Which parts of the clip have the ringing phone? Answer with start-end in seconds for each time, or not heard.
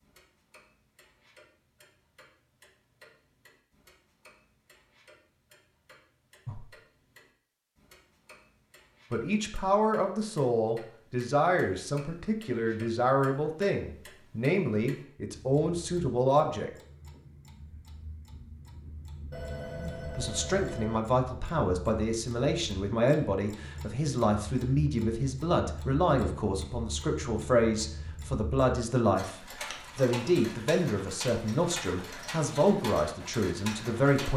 19.3-21.0.